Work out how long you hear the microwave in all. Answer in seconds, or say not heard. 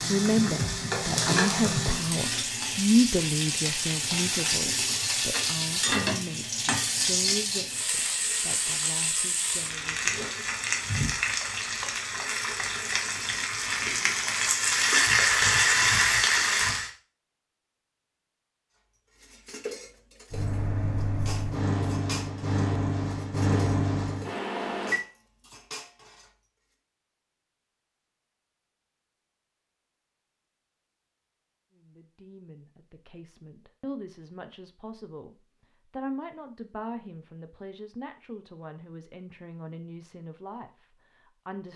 5 s.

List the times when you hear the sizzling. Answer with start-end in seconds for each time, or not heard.
0.0-16.9.